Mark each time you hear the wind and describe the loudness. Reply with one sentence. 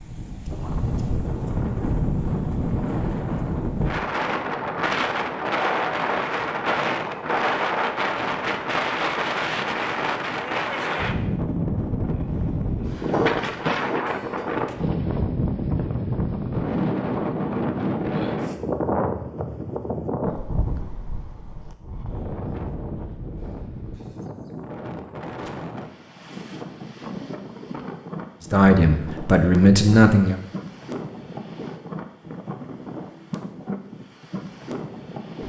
You can hear the wind from 0.0 to 35.4 s, getting quieter.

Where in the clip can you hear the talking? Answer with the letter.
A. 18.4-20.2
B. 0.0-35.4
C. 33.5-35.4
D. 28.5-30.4
D.